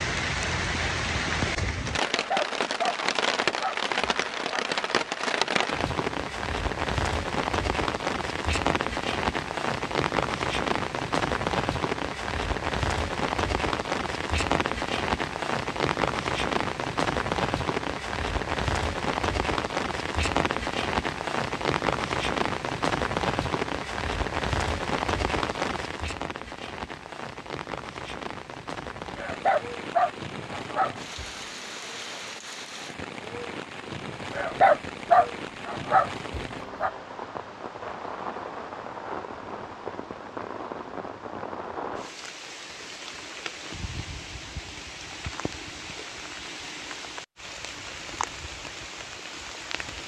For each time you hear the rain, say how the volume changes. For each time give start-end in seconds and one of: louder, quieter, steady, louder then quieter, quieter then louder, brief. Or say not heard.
0.0-50.0 quieter.